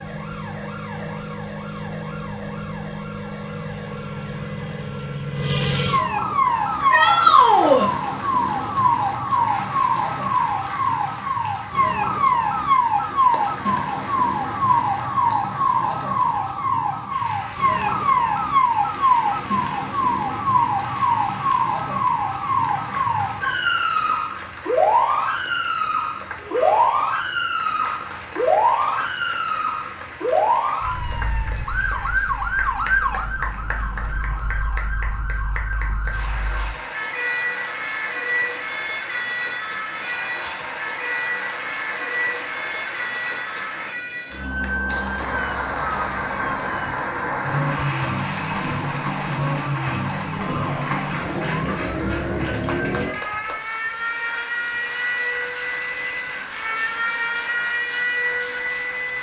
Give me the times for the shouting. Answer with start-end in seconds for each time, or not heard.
6.9-7.8, 26.4-26.9, 50.4-51.2.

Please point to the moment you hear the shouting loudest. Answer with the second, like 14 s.
7 s.